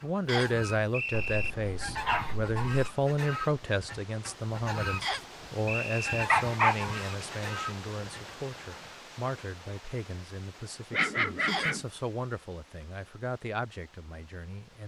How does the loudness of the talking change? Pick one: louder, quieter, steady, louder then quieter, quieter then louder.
quieter.